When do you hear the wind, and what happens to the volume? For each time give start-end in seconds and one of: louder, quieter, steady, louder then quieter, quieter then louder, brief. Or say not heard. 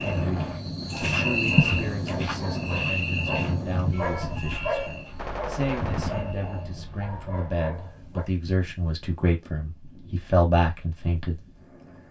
0.0-12.0 quieter.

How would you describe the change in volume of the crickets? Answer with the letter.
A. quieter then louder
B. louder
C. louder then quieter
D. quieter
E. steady
D.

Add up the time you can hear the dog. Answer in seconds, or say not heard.
8 s.